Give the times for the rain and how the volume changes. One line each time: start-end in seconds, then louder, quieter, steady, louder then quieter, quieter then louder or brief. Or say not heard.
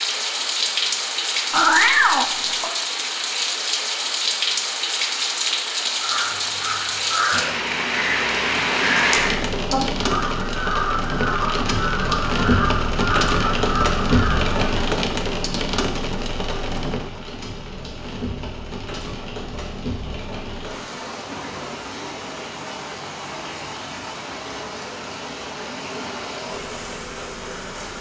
0.0-27.9 quieter.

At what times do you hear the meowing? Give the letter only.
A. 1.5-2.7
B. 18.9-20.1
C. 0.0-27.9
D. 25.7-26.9
A.